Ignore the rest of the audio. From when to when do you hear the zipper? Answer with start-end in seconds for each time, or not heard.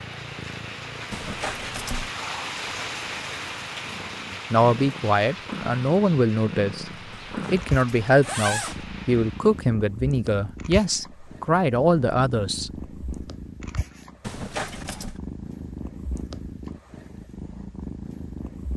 1.1-2.1, 7.1-8.8, 14.2-15.2.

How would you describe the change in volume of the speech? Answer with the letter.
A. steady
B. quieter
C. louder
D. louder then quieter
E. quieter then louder
A.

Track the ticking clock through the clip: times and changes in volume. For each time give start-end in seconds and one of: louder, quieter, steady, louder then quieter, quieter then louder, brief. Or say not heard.
not heard.